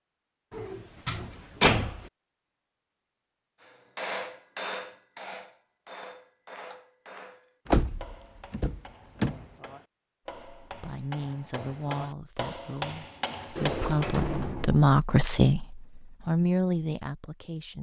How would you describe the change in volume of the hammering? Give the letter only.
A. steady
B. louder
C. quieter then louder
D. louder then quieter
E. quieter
C.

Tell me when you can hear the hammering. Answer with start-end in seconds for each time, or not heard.
3.6-14.2.